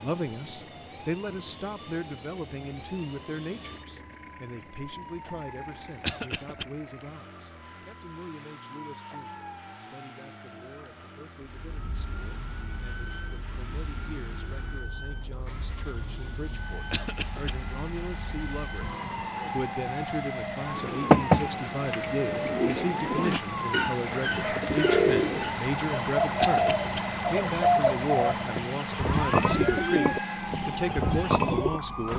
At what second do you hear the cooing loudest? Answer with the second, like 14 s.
21 s.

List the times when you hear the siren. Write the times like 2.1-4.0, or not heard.
0.0-32.1.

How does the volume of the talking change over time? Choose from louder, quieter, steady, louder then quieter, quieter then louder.
quieter then louder.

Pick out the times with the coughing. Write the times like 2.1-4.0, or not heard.
6.0-6.7, 16.9-17.6, 26.4-27.0.